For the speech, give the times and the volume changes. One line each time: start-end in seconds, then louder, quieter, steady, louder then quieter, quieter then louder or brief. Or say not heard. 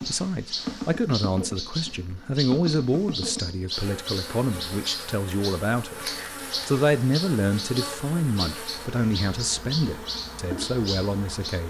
0.0-11.6 steady.